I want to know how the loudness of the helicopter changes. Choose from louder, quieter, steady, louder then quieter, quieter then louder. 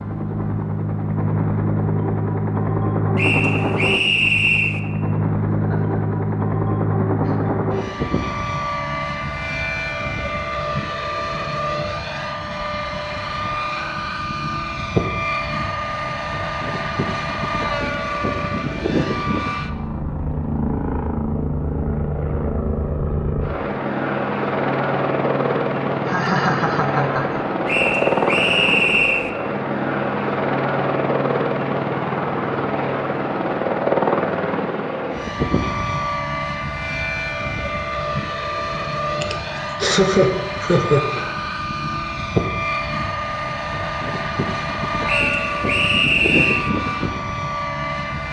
steady.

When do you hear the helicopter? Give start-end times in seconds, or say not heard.
0.0-48.2.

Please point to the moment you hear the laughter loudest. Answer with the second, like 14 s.
40 s.